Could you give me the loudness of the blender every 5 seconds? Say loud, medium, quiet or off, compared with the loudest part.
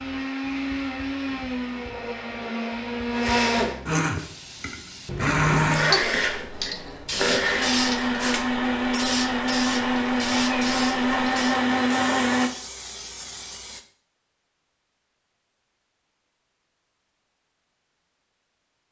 medium, loud, loud, off.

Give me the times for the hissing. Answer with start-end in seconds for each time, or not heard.
4.2-13.8.